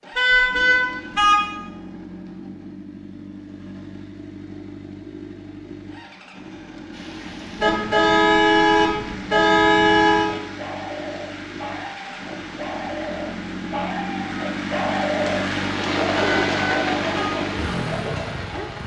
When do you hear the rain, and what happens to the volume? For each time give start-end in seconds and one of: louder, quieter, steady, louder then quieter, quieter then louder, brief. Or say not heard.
6.9-18.8 louder.